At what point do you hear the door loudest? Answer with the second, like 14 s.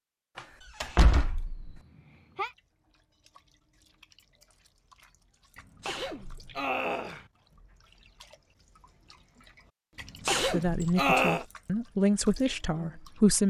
1 s.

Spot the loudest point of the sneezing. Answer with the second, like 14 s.
11 s.